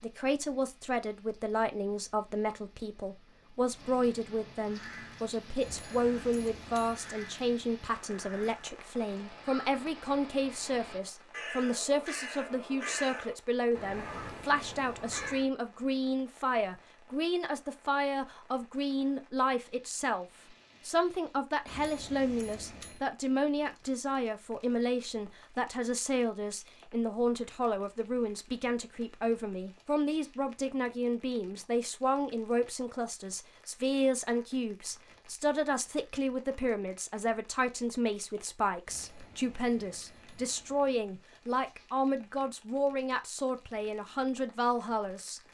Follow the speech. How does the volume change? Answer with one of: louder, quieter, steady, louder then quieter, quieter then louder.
steady.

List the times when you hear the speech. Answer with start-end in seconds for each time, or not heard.
0.0-20.2, 20.9-45.4.